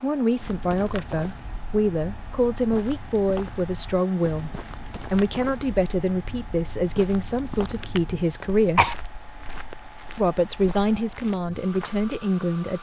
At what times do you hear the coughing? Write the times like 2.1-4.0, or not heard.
7.7-8.9.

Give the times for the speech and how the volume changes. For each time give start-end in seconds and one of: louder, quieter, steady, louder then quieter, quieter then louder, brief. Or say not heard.
0.0-8.8 steady
10.2-12.7 brief.